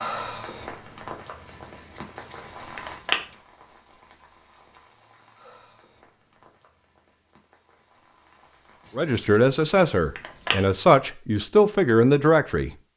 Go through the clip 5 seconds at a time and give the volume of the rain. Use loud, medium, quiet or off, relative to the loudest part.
loud, quiet, off.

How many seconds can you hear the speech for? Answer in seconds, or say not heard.
4 s.